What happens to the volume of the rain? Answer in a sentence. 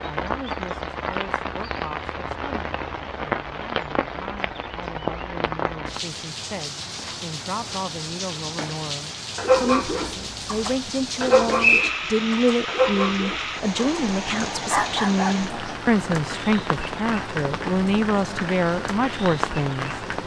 The loudness of the rain stays about the same.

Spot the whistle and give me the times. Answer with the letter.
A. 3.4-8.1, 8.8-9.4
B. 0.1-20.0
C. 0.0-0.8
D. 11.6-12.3
D.